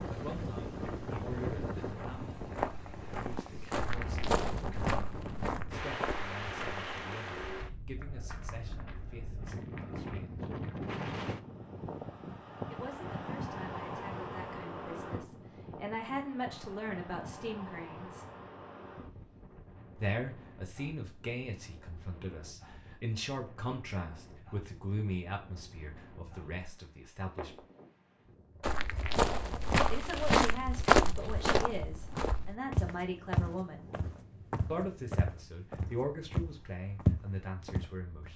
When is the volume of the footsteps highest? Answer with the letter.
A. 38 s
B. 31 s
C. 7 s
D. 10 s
B.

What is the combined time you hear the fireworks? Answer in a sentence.
The fireworks can't be heard in this clip.